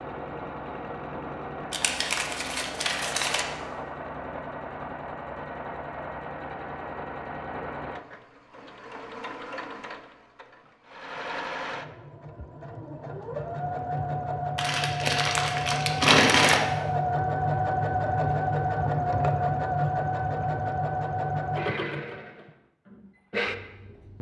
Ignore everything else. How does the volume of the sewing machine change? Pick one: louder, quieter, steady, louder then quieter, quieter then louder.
louder.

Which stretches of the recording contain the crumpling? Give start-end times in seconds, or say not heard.
1.7-3.5, 14.6-16.6.